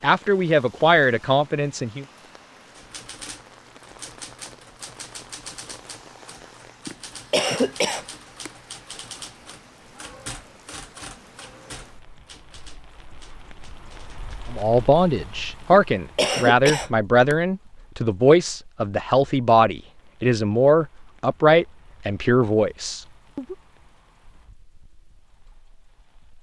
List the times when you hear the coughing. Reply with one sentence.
The coughing can be heard from 6.8 to 8.5 s and from 15.7 to 17.4 s.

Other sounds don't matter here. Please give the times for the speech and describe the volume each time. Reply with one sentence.
The speech can be heard briefly from 0.0 to 2.0 s; and from 14.5 to 23.6 s, at a steady volume.